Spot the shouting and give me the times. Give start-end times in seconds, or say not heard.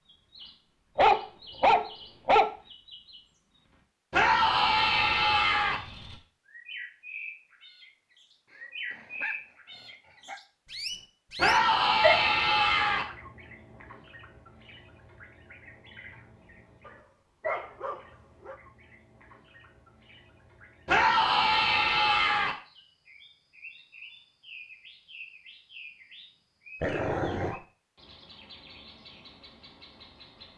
4.1-5.8, 11.3-13.1, 20.9-22.6.